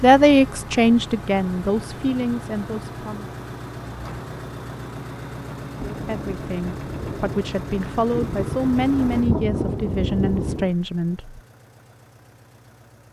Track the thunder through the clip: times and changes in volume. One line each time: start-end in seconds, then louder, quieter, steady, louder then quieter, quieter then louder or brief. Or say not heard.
5.8-10.8 louder.